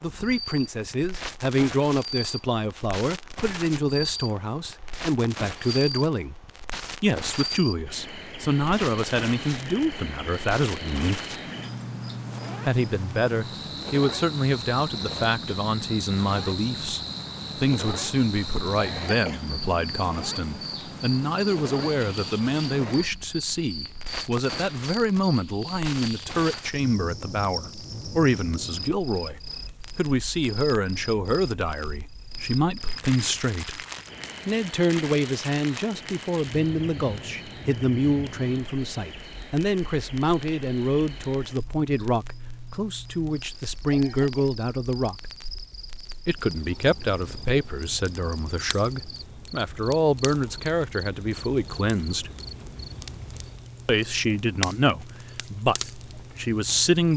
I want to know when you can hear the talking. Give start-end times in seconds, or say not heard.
0.0-6.3, 7.0-11.2, 12.7-33.9, 34.5-45.2, 46.2-52.3, 53.9-57.1.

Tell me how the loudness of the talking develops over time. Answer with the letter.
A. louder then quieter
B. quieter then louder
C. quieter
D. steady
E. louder
D.